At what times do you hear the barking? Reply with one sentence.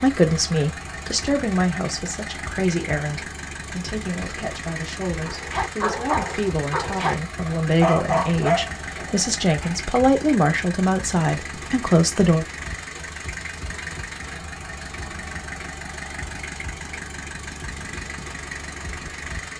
The barking can be heard from 5.2 to 9.8 s.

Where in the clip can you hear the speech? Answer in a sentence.
You can hear the speech from 0.0 to 12.4 s.